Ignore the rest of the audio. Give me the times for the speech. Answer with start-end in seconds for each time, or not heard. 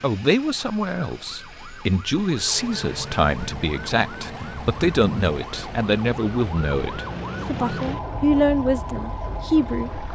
0.0-10.1.